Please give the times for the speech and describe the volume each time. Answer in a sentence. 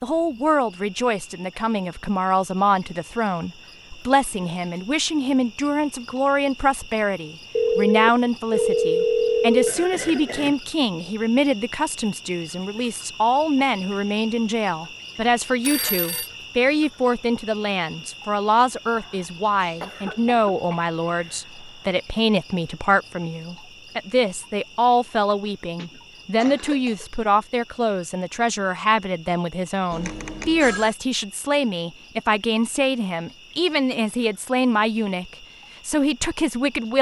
You can hear the speech from 0.0 to 36.9 s, at a steady volume.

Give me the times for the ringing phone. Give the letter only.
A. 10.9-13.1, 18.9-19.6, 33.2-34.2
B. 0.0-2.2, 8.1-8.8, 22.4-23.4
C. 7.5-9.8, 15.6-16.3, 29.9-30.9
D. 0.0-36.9
C.